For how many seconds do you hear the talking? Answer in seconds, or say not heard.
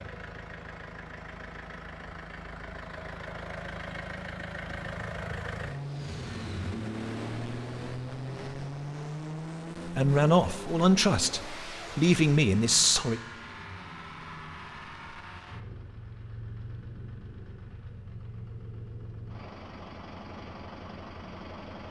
3 s.